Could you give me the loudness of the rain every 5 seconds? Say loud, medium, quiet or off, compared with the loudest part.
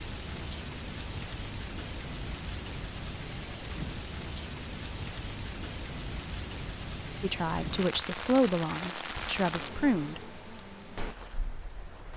loud, loud, medium.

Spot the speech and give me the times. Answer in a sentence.
The speech can be heard from 7.2 to 10.2 s.